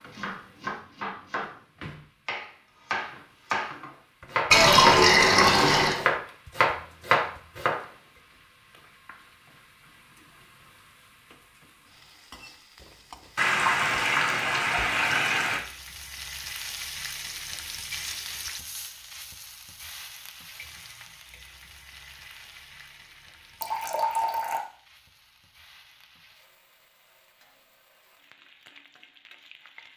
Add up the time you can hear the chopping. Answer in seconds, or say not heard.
7 s.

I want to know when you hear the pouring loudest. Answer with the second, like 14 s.
5 s.